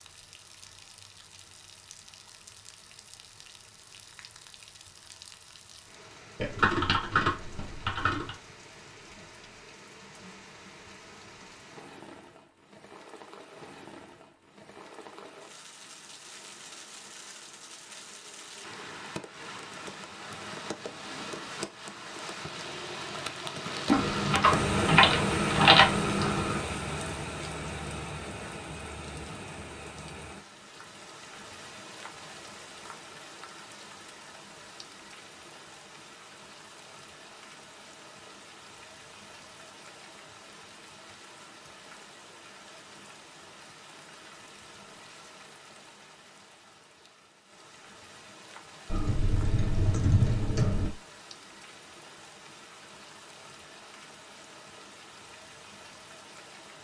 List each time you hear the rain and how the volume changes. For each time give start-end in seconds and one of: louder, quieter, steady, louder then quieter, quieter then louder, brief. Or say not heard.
0.0-56.7 louder then quieter.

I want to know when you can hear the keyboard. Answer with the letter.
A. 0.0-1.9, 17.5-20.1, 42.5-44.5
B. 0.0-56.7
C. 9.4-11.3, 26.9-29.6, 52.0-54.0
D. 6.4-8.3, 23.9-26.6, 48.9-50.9
D.